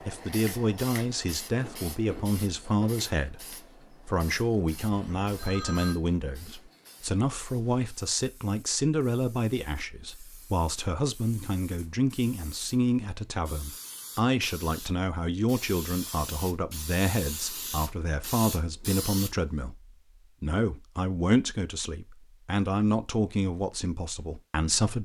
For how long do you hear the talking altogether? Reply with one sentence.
The talking can be heard for 25 seconds in total.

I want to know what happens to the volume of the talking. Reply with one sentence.
The loudness of the talking stays about the same.